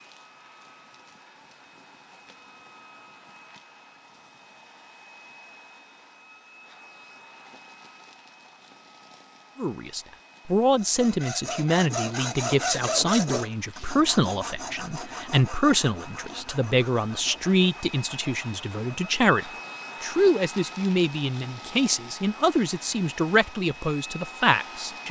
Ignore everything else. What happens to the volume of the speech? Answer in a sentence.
The volume of the speech stays about the same.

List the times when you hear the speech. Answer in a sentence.
You can hear the speech from 9.6 to 25.0 s.